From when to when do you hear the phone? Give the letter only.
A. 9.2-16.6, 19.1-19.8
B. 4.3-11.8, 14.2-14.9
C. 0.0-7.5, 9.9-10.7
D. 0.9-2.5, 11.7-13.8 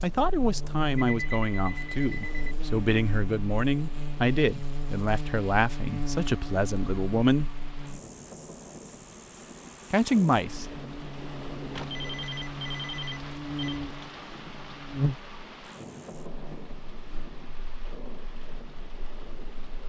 D.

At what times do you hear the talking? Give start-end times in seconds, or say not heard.
0.0-7.5, 9.9-10.7.